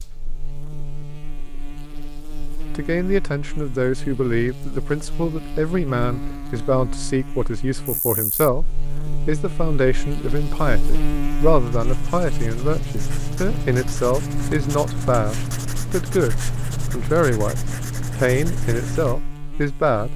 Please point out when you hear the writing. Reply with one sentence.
The writing can be heard from 11.7 to 19.1 s.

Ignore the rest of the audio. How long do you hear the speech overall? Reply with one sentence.
The speech can be heard for 17 seconds in total.